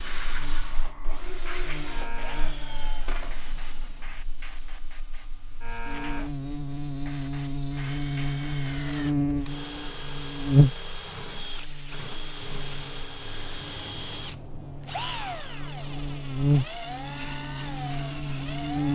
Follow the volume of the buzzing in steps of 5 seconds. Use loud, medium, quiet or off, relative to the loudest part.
quiet, loud, loud, loud.